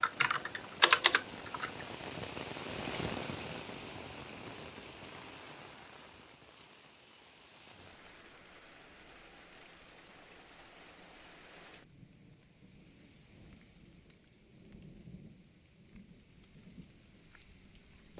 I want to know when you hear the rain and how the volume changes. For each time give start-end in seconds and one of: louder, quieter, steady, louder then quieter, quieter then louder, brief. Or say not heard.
0.0-18.1 quieter.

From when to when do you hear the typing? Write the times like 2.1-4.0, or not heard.
0.0-1.7.